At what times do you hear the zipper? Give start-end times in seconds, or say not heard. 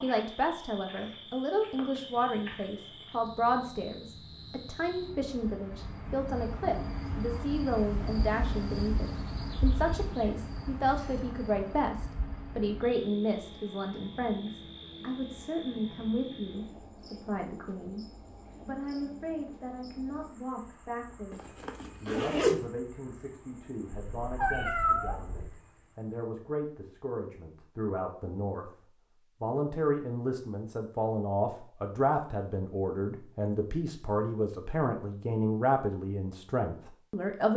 21.3-22.6.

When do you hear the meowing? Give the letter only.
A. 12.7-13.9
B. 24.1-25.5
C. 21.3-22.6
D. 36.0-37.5
B.